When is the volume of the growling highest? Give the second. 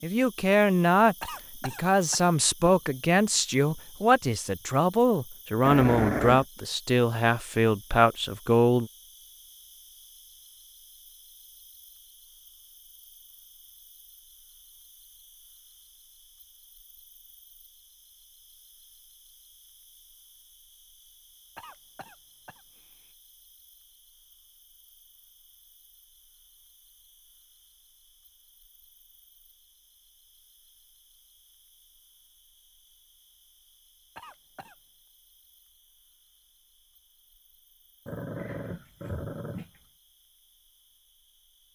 6 s.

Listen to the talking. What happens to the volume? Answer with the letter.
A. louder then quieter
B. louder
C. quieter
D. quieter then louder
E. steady
E.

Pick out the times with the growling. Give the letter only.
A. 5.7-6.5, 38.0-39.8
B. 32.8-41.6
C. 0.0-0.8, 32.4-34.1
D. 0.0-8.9
A.